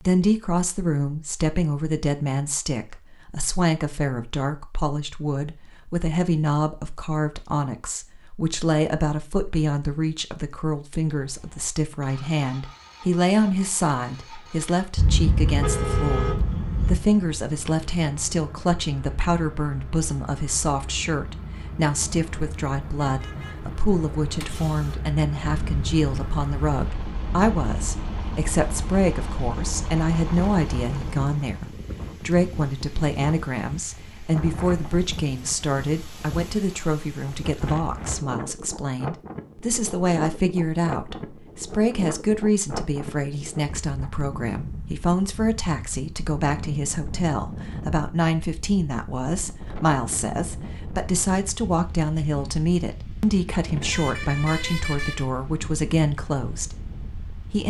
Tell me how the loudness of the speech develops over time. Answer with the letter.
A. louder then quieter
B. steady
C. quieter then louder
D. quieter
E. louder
B.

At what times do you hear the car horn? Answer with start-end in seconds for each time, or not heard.
14.9-17.0, 23.0-24.9, 53.6-55.2.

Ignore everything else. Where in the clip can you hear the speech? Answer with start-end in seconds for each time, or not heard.
0.1-57.6.